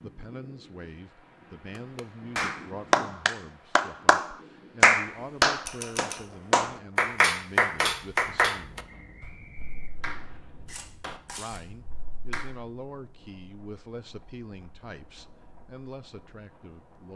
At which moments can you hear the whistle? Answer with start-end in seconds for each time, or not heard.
8.8-10.4.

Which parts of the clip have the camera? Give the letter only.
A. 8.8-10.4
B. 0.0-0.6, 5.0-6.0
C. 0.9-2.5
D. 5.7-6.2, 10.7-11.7
D.